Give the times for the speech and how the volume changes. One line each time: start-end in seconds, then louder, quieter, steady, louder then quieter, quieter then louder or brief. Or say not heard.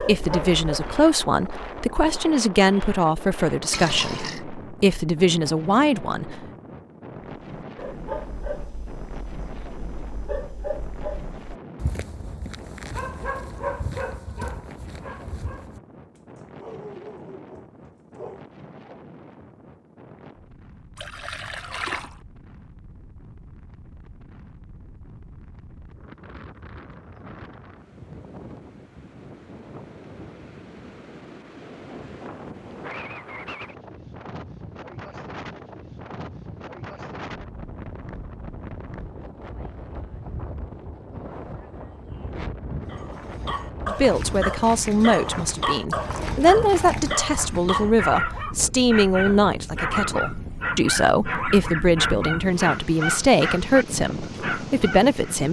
0.0-6.4 steady
43.9-55.4 steady.